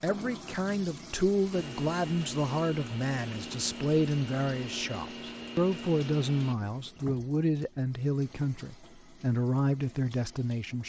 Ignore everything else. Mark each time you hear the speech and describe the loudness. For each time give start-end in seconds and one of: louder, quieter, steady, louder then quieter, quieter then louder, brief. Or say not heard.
0.0-10.8 steady.